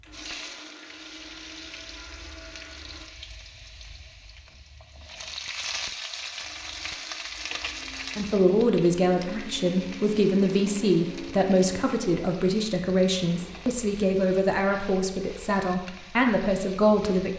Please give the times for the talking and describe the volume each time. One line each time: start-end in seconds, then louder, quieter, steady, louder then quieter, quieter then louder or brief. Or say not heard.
8.2-17.3 steady.